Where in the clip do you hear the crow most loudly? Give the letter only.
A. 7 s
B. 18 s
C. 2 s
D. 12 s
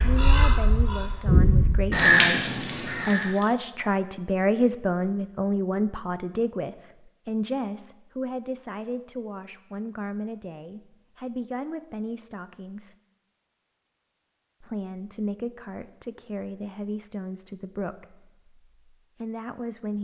C.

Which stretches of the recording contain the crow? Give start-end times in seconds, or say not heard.
0.0-3.5.